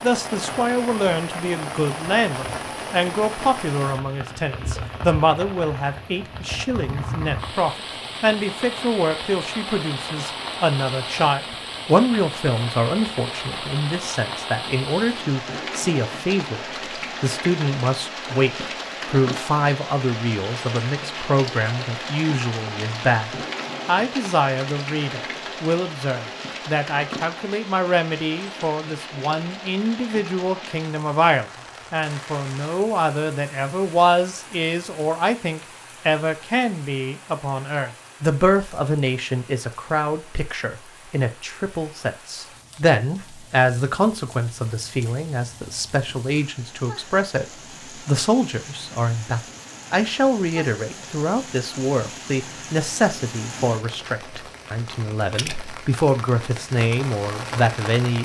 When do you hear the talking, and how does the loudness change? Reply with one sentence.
The talking can be heard from 0.0 to 58.1 s, at a steady volume.